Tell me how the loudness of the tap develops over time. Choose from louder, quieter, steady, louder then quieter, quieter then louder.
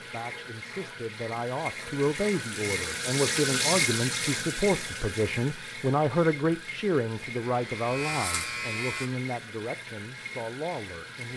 louder then quieter.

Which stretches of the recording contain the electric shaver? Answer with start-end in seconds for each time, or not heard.
7.6-9.1.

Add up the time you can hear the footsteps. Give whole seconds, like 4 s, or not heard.
not heard.